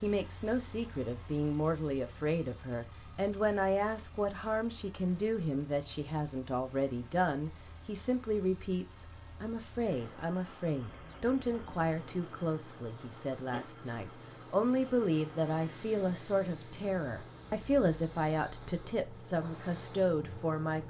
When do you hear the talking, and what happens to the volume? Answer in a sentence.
You can hear the talking from 0.0 to 20.8 s, at a steady volume.